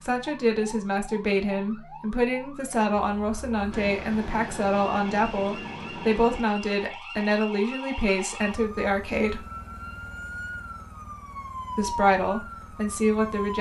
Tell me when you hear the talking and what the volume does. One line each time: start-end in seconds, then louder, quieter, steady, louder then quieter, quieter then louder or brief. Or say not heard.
0.0-9.4 steady
11.8-13.5 brief.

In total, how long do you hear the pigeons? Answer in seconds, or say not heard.
not heard.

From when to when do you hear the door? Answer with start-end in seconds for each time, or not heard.
not heard.